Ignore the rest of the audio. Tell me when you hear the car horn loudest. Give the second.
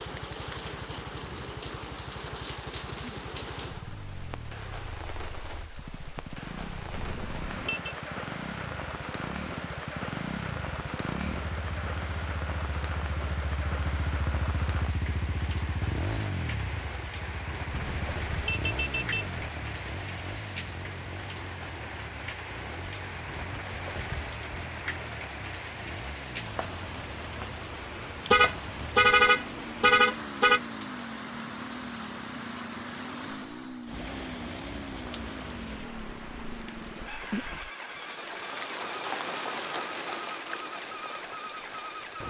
29 s.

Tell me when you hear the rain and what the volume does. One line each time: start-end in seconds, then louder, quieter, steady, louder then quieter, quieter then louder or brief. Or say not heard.
0.0-42.2 steady.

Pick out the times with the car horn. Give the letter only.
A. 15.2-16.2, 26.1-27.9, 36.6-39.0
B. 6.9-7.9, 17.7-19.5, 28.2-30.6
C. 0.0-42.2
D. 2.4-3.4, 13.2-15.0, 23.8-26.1
B.